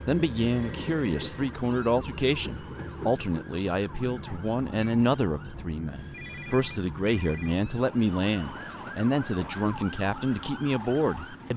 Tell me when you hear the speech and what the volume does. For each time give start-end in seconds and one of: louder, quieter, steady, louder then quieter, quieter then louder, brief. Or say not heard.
0.1-11.5 steady.